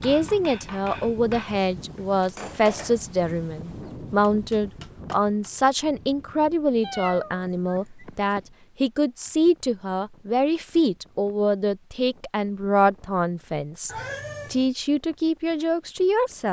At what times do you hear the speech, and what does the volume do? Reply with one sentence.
You can hear the speech from 0.0 to 13.9 s, at a steady volume; and briefly from 14.5 to 16.4 s.